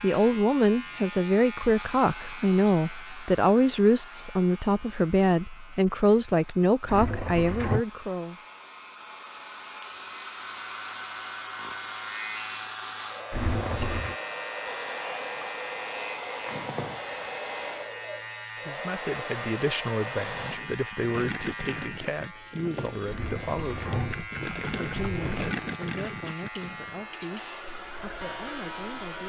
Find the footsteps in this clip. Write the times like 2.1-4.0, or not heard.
not heard.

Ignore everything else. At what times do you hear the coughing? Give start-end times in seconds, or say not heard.
not heard.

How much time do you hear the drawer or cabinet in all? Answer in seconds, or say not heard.
4 s.